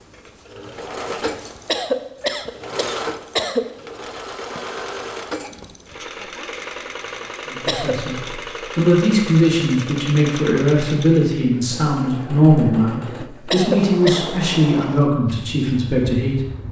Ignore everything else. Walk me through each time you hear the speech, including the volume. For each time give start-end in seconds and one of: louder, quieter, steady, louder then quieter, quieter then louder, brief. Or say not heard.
7.5-16.4 steady.